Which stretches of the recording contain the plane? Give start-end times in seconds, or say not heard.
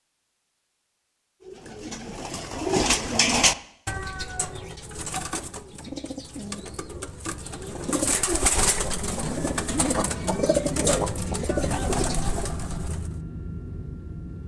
10.3-14.4.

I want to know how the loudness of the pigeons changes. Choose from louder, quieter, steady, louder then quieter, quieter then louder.
quieter then louder.